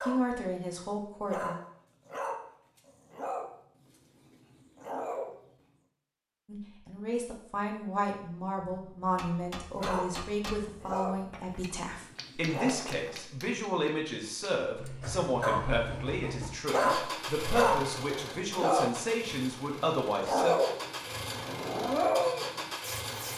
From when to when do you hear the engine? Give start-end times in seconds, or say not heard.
14.8-23.3.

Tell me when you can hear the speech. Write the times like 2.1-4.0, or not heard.
0.0-1.6, 6.5-20.6.